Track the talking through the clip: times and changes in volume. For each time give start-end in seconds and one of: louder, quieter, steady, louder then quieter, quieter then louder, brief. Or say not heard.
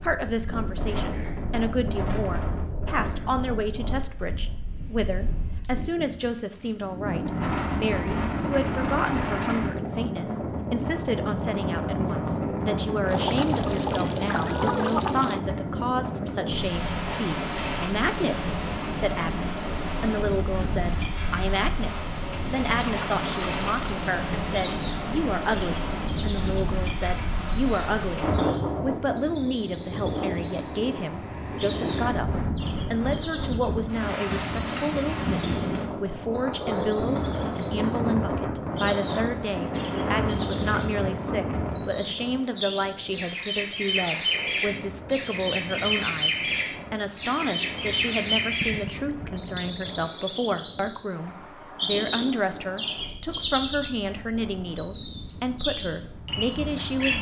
0.0-57.1 steady.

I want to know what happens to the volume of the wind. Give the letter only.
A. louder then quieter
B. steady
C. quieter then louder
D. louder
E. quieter
E.